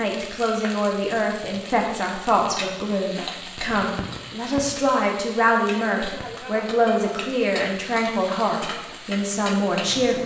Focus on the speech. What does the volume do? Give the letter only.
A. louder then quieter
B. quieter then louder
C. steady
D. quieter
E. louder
C.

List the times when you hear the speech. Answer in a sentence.
The speech can be heard from 0.0 to 10.2 s.